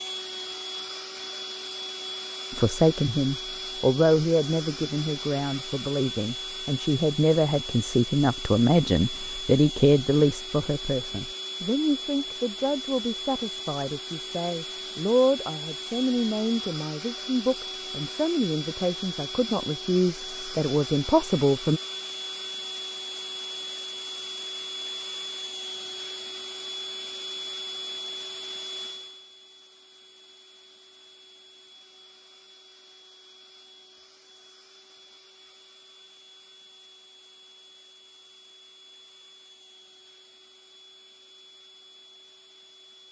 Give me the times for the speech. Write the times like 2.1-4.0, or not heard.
2.5-21.8.